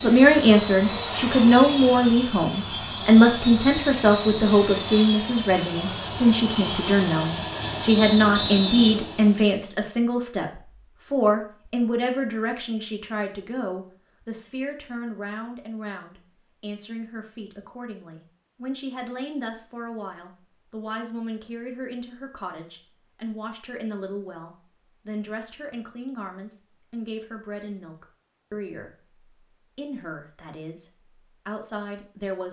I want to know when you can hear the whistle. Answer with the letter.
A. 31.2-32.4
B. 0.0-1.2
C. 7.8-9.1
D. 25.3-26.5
C.